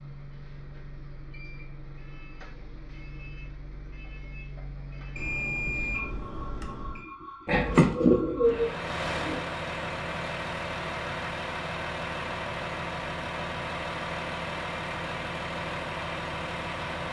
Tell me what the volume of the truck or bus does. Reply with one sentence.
The loudness of the truck or bus goes up.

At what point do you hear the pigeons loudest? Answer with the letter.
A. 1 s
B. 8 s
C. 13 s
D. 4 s
B.